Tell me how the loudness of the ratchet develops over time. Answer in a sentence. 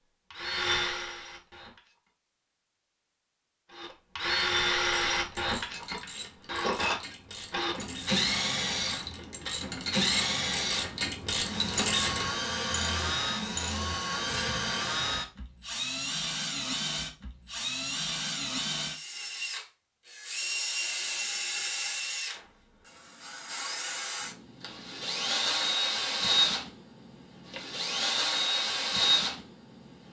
The volume of the ratchet goes up, then down.